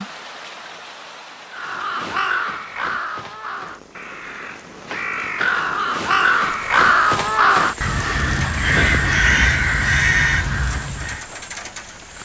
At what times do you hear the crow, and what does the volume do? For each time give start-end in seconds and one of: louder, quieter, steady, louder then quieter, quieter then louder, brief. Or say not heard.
1.5-11.2 louder.